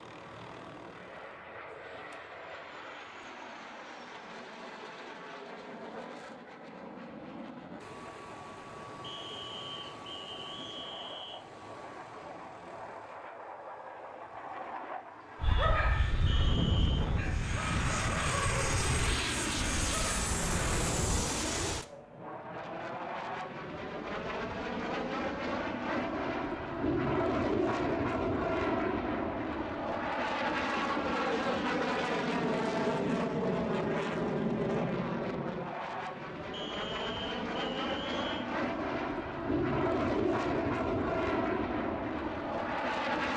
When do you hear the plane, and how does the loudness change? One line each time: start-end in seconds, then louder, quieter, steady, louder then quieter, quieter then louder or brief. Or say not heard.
0.0-43.3 louder.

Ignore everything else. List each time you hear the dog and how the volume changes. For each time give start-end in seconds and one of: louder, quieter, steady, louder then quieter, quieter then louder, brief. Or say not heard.
15.4-21.3 quieter.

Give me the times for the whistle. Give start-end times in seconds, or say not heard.
9.0-11.4, 16.2-17.1, 36.5-38.5.